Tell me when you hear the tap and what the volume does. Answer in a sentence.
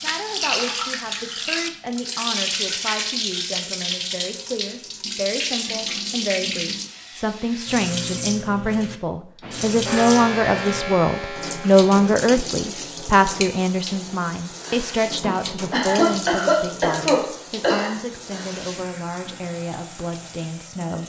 You can hear the tap from 0.0 to 21.0 s, getting quieter.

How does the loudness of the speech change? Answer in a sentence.
The loudness of the speech goes up, then down.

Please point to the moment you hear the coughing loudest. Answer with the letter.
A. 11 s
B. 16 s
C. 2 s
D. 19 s
B.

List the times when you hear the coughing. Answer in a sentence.
The coughing can be heard from 15.2 to 17.9 s.